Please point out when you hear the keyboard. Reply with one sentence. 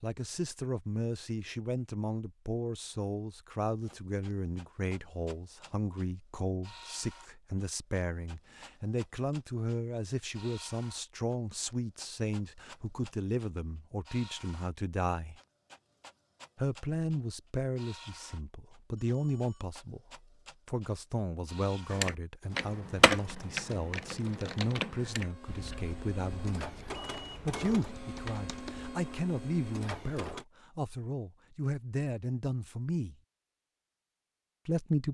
The keyboard can be heard from 21.9 to 28.9 s.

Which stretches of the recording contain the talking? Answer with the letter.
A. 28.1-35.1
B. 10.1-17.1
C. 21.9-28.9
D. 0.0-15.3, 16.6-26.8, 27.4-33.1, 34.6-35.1
D.